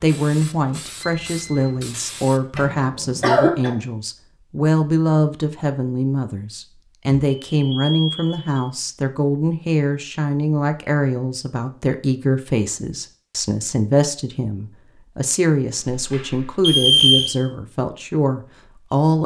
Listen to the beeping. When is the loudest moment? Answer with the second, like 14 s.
17 s.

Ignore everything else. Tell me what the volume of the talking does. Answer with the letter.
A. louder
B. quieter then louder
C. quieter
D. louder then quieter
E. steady
E.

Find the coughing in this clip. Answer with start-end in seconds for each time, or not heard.
2.5-3.8.